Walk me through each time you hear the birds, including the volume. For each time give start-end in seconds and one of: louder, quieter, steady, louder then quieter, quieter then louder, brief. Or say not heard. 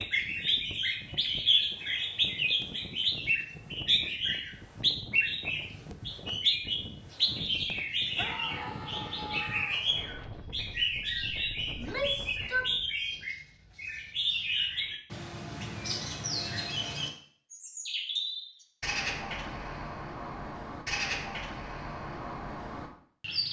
0.0-23.4 quieter.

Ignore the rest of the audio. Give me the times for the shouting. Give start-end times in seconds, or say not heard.
8.2-9.8, 11.8-12.7.